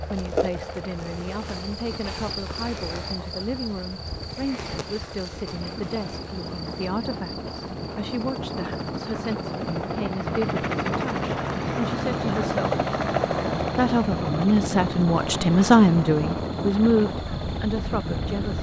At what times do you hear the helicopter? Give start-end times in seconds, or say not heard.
0.0-18.5.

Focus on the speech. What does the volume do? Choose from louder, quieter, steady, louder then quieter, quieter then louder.
louder.